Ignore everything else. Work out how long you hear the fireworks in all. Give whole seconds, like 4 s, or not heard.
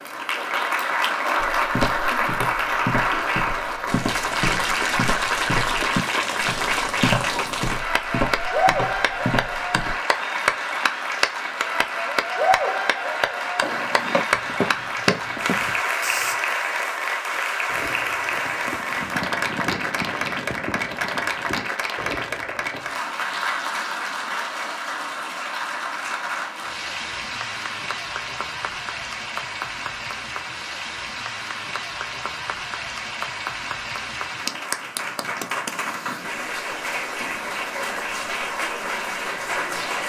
5 s.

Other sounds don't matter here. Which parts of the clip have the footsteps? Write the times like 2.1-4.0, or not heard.
1.4-9.9, 13.6-16.4.